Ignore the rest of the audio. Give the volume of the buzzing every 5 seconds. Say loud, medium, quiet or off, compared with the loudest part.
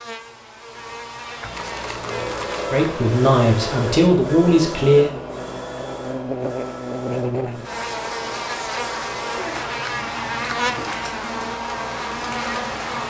medium, loud, loud.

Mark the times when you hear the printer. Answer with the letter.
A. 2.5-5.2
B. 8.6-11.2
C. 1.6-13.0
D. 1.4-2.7
C.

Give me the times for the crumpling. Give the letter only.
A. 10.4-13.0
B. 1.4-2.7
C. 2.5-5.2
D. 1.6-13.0
B.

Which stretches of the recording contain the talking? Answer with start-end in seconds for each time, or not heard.
2.5-5.2.